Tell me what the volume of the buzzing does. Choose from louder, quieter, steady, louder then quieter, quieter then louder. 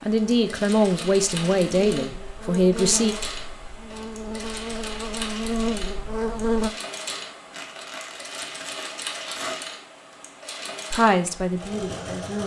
louder.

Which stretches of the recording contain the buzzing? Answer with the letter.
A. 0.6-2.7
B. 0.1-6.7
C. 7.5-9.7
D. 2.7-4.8
B.